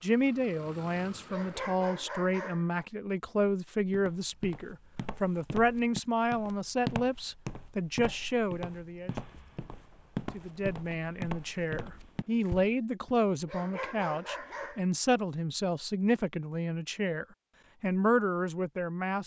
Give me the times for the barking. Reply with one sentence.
You can hear the barking from 1.2 to 2.6 s and from 13.4 to 14.8 s.